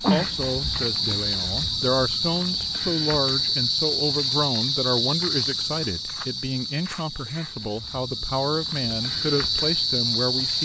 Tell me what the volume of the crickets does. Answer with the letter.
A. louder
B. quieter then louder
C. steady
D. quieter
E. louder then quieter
B.